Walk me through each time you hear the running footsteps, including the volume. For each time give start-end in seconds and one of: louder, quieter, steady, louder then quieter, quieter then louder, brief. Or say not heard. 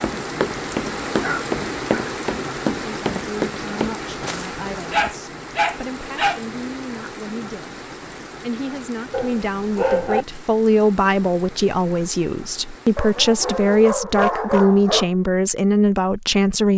0.0-4.5 steady.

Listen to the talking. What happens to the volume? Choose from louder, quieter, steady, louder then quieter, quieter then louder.
louder.